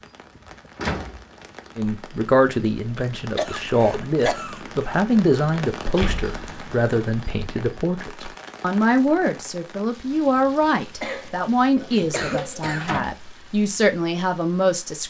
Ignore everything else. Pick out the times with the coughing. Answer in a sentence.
The coughing can be heard from 3.2 to 4.7 s and from 11.0 to 12.9 s.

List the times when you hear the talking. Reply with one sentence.
You can hear the talking from 1.8 to 15.0 s.